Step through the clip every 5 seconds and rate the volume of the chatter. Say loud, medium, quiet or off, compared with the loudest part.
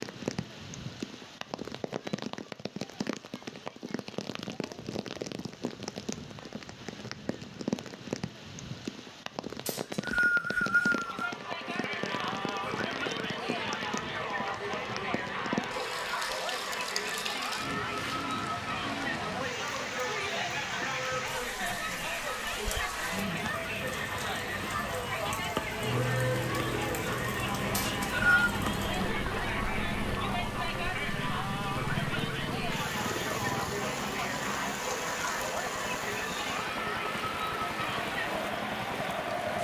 off, off, loud, loud, loud, loud, loud, loud.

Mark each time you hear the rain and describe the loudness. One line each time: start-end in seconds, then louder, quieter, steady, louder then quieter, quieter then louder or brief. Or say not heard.
0.0-39.5 steady.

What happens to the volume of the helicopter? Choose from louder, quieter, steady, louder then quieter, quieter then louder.
quieter.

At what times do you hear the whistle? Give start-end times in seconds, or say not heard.
9.7-11.3, 27.7-28.4.